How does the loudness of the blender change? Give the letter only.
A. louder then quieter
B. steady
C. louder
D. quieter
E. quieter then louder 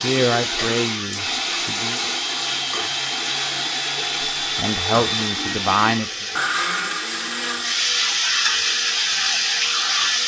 D.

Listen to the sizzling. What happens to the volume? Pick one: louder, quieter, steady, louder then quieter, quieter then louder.
louder.